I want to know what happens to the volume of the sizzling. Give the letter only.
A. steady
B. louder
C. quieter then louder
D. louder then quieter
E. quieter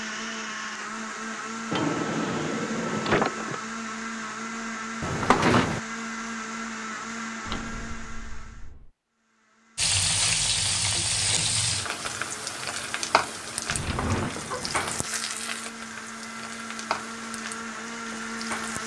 E.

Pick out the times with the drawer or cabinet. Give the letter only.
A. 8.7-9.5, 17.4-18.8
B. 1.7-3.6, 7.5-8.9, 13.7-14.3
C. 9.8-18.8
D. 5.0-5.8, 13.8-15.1
B.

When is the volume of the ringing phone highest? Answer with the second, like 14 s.
5 s.